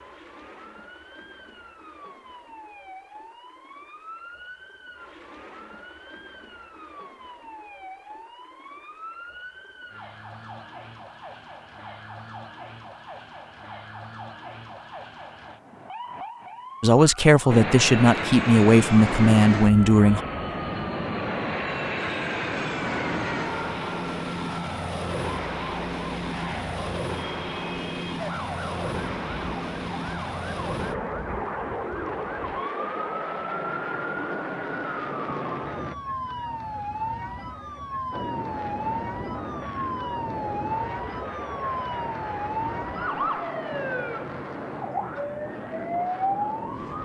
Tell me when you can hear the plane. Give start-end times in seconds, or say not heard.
17.4-36.0, 38.1-47.0.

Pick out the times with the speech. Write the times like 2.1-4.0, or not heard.
16.8-20.2.